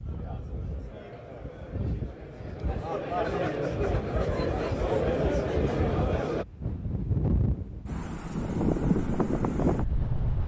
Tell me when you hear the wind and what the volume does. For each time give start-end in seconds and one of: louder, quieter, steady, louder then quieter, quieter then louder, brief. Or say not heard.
0.0-10.4 louder.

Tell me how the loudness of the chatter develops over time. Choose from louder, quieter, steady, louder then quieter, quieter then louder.
louder.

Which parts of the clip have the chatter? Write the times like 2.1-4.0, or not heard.
0.0-6.5.